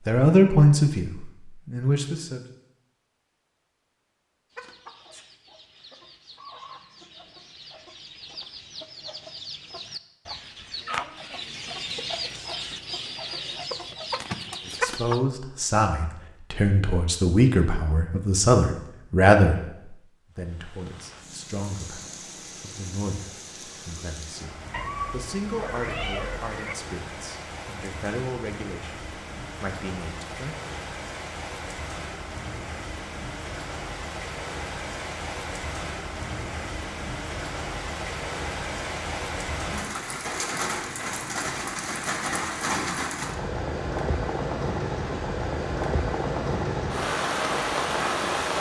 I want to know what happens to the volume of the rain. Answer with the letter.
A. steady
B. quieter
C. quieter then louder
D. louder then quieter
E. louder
E.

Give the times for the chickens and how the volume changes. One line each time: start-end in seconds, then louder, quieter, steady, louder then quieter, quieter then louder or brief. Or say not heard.
4.5-15.2 louder.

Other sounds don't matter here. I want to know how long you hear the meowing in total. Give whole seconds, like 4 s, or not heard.
2 s.